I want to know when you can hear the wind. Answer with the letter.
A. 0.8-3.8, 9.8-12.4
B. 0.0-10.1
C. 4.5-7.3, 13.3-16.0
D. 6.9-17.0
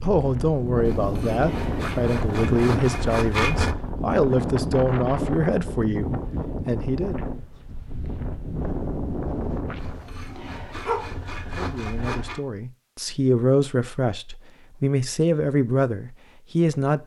B.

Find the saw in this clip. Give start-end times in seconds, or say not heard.
0.8-3.8, 9.8-12.4.